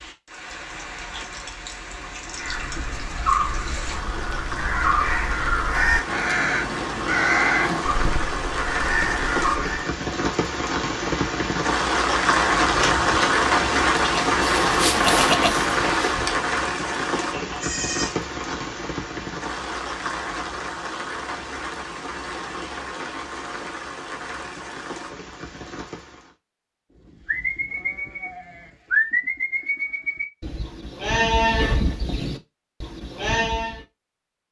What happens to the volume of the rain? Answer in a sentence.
The loudness of the rain goes up, then down.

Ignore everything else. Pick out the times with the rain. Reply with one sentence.
The rain can be heard from 0.0 to 26.4 s.